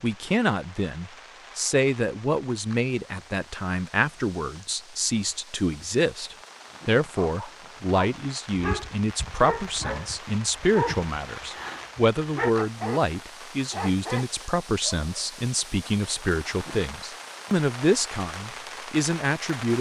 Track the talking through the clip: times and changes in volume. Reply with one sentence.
The talking can be heard from 0.0 to 19.7 s, at a steady volume.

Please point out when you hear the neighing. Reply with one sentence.
You can't hear the neighing here.